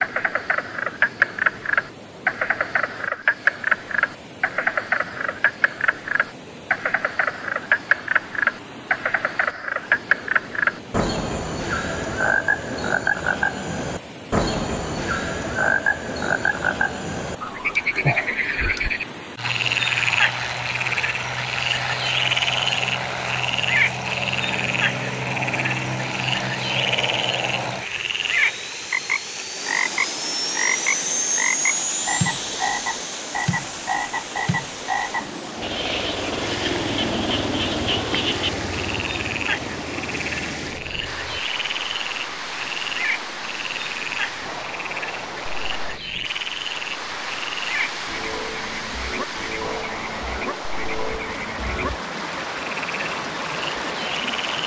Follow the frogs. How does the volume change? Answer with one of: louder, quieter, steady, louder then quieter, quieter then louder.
quieter.